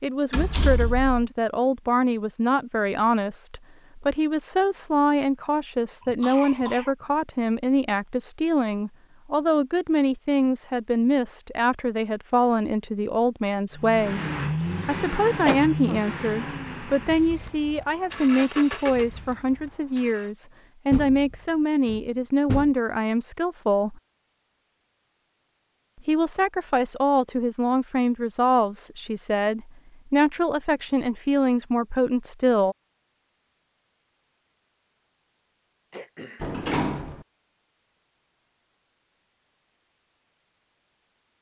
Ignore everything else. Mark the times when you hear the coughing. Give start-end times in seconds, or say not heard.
6.0-7.0, 15.4-16.0, 35.9-36.5.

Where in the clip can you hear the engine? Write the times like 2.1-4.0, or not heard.
13.8-20.3.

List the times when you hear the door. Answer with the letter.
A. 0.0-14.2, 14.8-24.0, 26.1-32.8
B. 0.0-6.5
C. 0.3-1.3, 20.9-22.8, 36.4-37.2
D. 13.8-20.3
C.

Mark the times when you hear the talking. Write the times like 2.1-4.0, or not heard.
0.0-14.2, 14.8-24.0, 26.1-32.8.